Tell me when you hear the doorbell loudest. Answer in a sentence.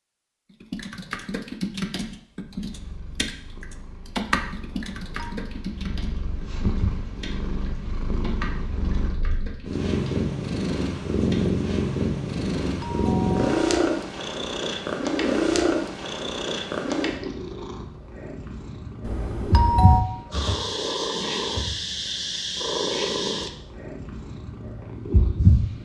The loudest moment of the doorbell is at 20 seconds.